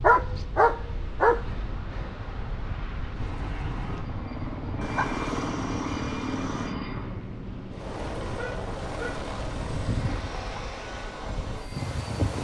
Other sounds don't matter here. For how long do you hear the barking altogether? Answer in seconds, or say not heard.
4 s.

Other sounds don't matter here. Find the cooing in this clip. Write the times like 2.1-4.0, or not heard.
not heard.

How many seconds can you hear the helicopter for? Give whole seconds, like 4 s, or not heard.
9 s.